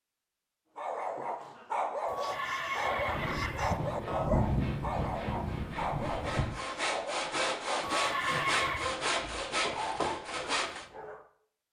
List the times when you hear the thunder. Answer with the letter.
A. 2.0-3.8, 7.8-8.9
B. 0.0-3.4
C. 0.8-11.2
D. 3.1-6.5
D.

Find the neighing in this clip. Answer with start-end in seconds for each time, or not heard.
2.0-3.8, 7.8-8.9.